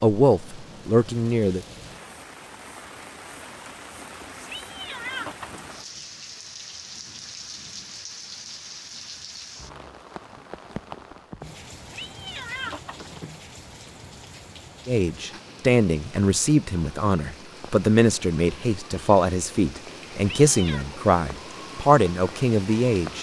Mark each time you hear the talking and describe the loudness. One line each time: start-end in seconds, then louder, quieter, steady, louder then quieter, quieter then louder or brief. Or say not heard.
0.0-1.6 brief
14.8-23.1 steady.